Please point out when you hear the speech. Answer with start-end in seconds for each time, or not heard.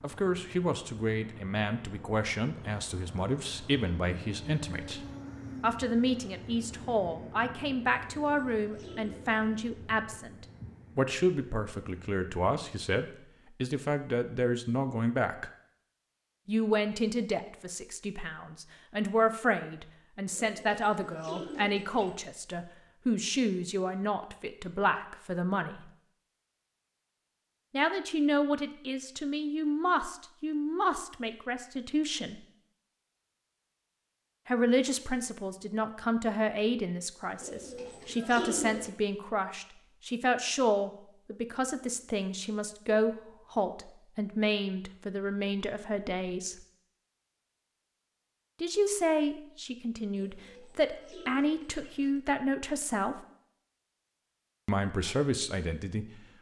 0.0-15.5, 16.4-25.9, 27.7-32.4, 34.5-46.5, 48.6-53.1, 54.6-56.0.